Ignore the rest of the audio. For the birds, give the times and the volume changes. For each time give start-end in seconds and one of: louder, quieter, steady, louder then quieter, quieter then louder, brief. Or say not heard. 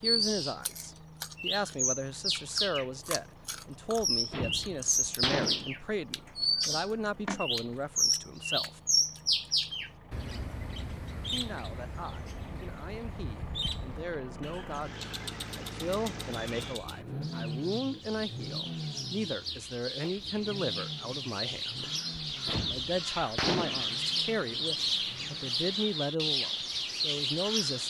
0.0-27.8 quieter then louder.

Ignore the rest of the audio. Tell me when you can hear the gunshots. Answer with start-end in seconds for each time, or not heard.
4.1-5.8, 22.3-23.9.